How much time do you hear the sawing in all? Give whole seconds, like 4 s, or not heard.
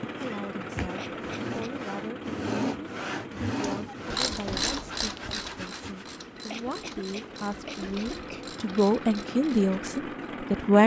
6 s.